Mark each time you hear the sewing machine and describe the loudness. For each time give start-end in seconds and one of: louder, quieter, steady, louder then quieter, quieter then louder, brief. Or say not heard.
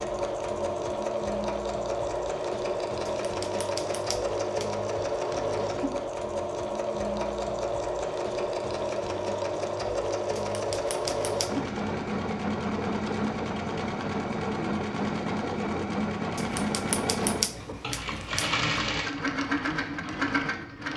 0.0-20.9 steady.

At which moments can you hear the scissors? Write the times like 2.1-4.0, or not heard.
3.0-4.8, 10.3-11.5, 16.4-18.6.